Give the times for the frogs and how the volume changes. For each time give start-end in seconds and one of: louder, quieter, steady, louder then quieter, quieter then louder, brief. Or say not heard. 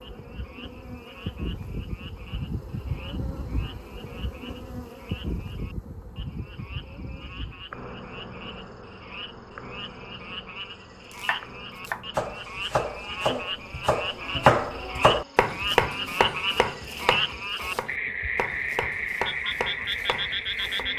0.0-20.9 louder.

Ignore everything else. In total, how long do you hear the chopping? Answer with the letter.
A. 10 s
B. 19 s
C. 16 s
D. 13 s
A.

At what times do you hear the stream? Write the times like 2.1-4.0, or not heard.
not heard.